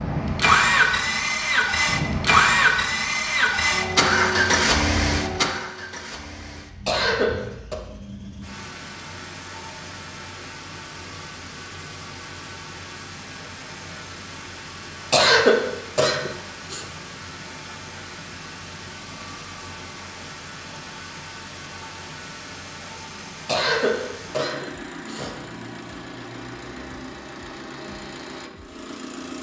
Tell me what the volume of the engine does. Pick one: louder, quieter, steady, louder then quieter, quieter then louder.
quieter.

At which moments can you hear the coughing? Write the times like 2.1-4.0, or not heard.
6.8-7.8, 15.1-16.9, 23.4-25.4.